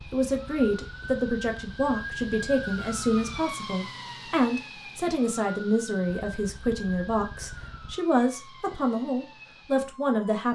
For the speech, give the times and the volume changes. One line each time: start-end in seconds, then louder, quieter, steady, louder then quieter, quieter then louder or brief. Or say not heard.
0.1-10.5 steady.